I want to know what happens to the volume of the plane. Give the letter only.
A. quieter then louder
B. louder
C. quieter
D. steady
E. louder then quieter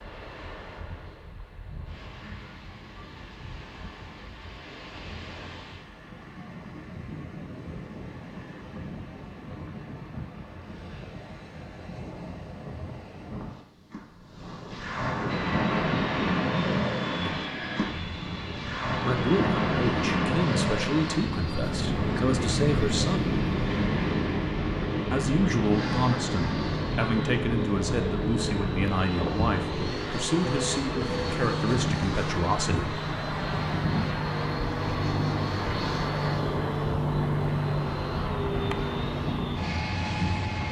B.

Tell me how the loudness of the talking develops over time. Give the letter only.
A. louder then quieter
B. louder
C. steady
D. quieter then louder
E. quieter
C.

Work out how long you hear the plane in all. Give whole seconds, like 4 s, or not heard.
25 s.